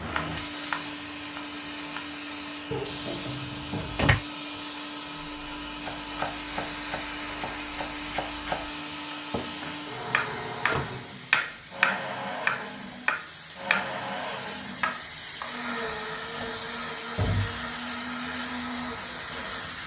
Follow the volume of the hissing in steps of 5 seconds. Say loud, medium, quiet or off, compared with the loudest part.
loud, loud, medium, loud.